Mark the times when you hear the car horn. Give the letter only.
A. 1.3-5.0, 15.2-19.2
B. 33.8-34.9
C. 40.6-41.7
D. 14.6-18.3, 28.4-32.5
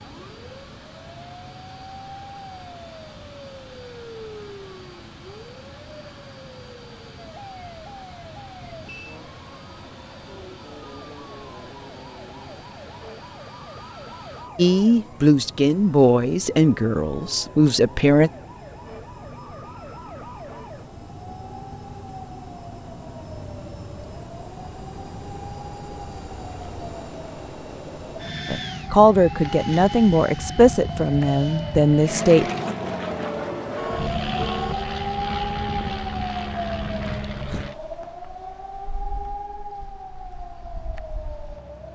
B.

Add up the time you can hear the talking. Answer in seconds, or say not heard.
8 s.